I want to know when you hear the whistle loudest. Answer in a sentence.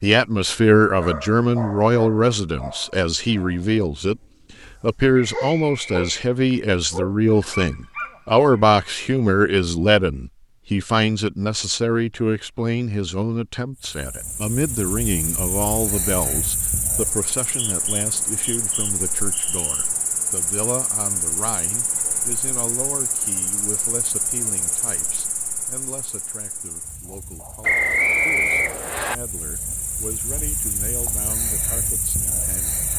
The loudest moment of the whistle is at 28 seconds.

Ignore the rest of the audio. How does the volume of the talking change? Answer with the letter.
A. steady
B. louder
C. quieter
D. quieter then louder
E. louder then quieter
C.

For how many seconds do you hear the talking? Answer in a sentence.
You can hear the talking for 32 seconds altogether.